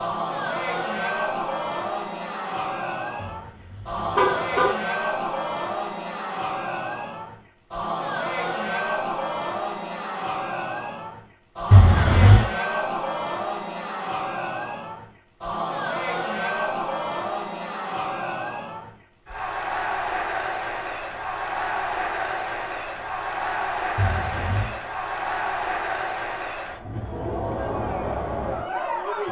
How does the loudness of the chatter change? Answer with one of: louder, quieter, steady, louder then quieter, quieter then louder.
steady.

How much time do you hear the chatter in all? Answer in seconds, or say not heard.
29 s.